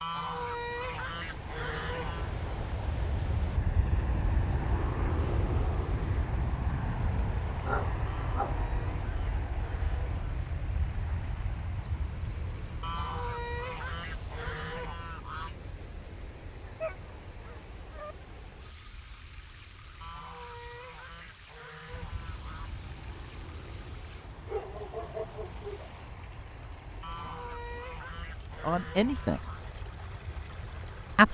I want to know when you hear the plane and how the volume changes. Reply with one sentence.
The plane can be heard from 0.0 to 31.2 s, getting quieter.